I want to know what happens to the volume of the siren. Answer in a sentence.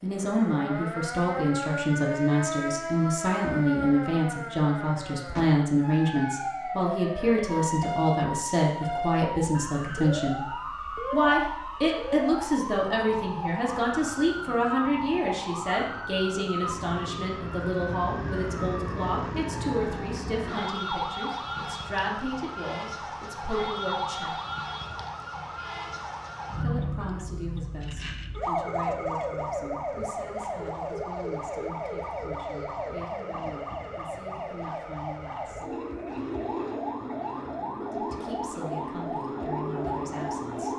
The volume of the siren stays about the same.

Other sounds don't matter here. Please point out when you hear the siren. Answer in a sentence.
You can hear the siren from 0.1 to 40.7 s.